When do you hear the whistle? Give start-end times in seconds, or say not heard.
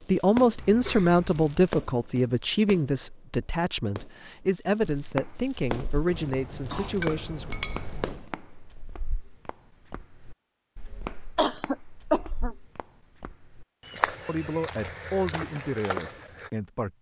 not heard.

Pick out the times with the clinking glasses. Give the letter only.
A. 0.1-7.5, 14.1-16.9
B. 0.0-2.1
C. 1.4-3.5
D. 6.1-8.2
D.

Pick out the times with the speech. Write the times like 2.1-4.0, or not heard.
0.1-7.5, 14.1-16.9.